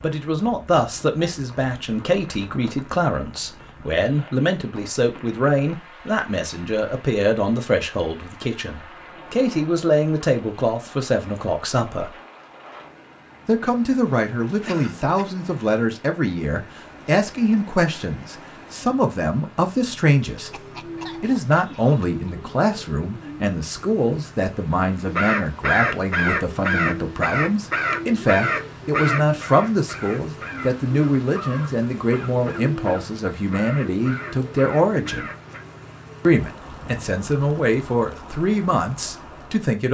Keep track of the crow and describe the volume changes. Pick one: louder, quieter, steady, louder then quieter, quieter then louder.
quieter.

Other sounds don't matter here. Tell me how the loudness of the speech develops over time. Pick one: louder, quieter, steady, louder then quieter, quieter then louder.
steady.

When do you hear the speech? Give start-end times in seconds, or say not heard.
0.0-12.2, 13.4-20.5, 21.2-35.3, 36.2-39.8.